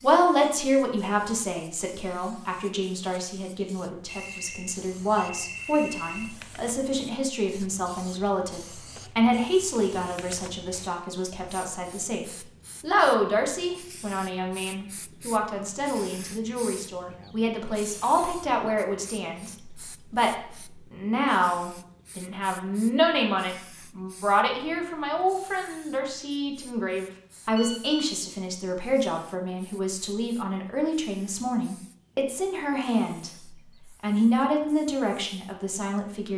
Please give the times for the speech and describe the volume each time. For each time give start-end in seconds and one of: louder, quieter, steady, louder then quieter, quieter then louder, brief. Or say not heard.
0.0-36.3 steady.